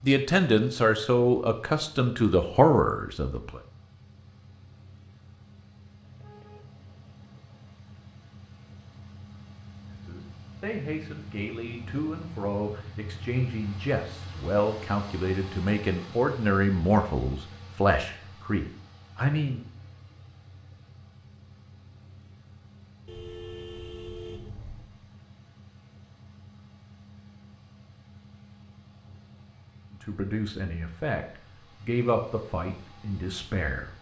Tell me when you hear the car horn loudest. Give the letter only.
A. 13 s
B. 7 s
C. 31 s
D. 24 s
D.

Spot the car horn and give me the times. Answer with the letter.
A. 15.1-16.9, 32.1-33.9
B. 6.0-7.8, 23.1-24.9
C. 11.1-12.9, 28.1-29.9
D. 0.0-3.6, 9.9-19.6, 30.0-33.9
B.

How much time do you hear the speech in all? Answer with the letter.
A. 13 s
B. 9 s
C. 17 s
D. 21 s
C.